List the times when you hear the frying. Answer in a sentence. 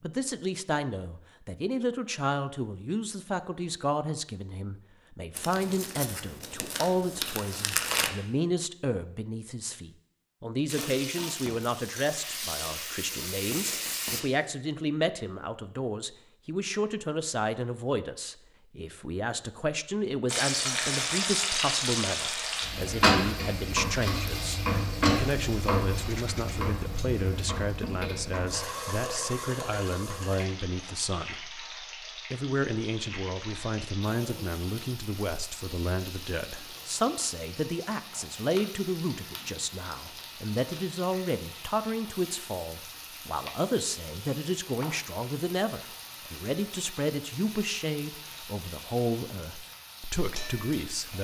You can hear the frying from 10.7 to 14.2 s and from 20.2 to 51.1 s.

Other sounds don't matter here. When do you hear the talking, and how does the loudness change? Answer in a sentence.
You can hear the talking from 0.0 to 51.1 s, at a steady volume.